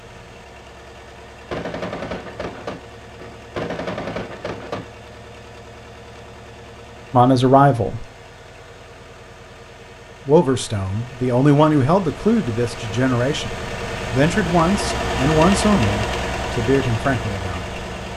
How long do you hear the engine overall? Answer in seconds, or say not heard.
18 s.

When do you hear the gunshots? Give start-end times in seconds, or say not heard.
1.5-4.9.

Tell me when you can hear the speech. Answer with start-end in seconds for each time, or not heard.
7.1-8.1, 10.2-17.6.